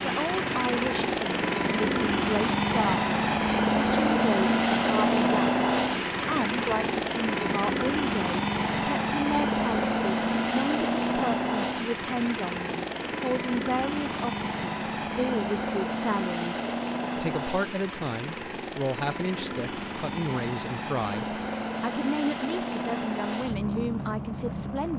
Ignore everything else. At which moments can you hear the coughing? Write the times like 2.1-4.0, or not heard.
not heard.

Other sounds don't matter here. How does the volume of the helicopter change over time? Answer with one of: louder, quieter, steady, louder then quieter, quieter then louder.
quieter.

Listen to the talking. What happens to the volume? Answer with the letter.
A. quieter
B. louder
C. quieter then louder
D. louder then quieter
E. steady
E.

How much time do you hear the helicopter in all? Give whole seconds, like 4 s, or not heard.
25 s.